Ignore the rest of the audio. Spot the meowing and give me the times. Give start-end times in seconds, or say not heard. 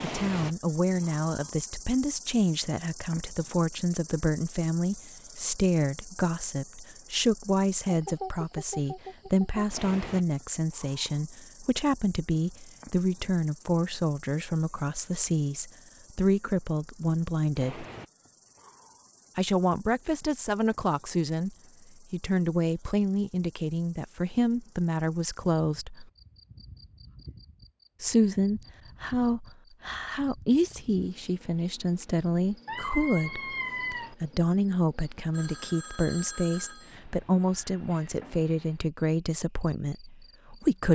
32.6-34.1.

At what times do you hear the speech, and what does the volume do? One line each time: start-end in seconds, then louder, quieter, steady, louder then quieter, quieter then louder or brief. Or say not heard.
0.0-17.9 steady
19.4-26.1 steady
28.0-40.9 steady.